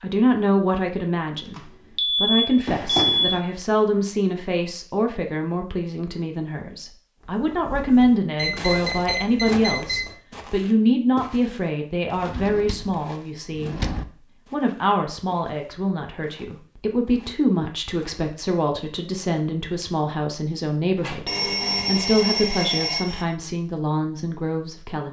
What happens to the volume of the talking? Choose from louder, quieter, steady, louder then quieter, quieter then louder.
steady.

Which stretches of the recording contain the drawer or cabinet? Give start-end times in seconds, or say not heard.
2.6-3.5, 12.2-14.1, 20.9-21.9.